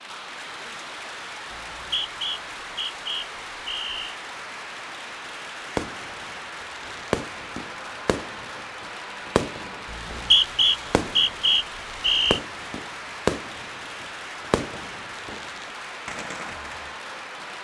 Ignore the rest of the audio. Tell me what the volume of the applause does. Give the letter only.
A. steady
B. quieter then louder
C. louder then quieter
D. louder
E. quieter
A.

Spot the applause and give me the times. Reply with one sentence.
You can hear the applause from 0.0 to 17.5 s.